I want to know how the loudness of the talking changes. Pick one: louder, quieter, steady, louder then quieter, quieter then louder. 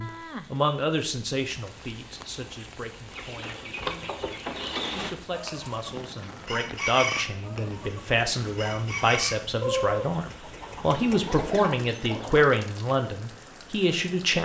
quieter then louder.